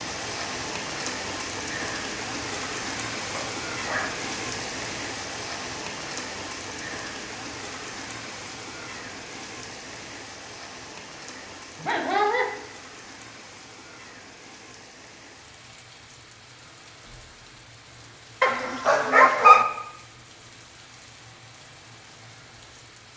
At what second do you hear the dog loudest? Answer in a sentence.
The loudest moment of the dog is at 19 seconds.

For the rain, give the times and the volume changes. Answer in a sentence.
You can hear the rain from 0.0 to 23.1 s, getting quieter.